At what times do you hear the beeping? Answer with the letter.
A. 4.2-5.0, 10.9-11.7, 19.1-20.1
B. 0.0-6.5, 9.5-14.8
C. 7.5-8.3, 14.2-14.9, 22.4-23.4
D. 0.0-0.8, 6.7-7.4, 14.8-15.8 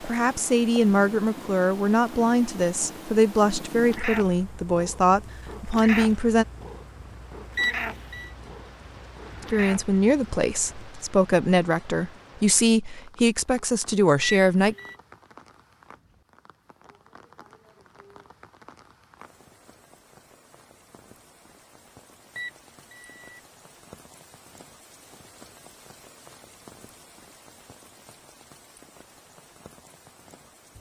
C.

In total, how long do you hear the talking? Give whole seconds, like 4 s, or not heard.
12 s.